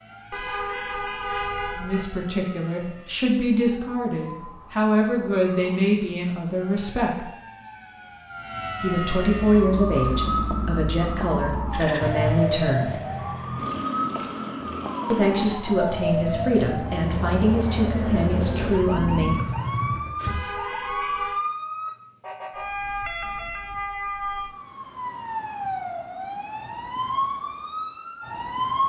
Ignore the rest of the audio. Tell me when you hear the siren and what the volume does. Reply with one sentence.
You can hear the siren from 0.0 to 28.8 s, getting louder.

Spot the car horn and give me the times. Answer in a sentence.
You can hear the car horn from 0.3 to 2.1 s and from 20.2 to 21.4 s.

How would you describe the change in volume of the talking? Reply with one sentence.
The loudness of the talking stays about the same.